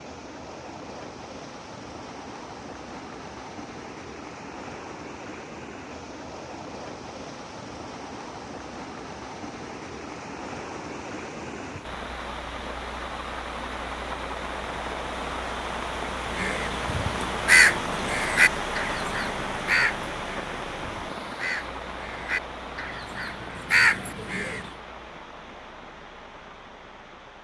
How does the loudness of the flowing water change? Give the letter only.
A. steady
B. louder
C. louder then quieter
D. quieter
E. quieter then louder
C.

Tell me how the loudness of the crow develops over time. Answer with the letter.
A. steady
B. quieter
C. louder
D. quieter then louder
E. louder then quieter
D.